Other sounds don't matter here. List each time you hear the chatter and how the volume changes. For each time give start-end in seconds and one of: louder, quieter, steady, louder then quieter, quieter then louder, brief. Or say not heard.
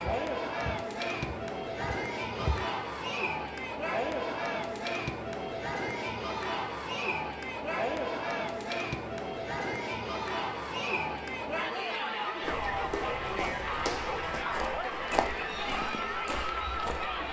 0.0-17.2 steady.